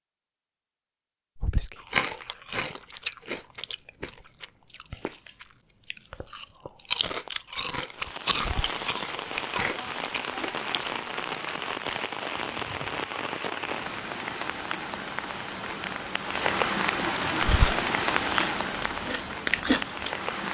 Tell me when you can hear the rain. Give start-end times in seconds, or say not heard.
7.8-20.4.